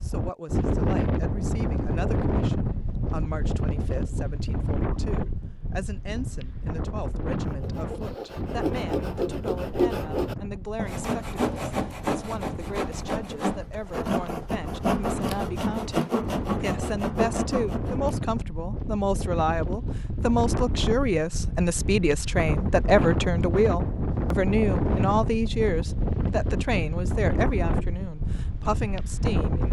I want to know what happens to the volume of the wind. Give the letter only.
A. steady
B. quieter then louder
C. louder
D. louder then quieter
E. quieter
B.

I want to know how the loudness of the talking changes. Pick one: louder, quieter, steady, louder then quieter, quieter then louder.
louder.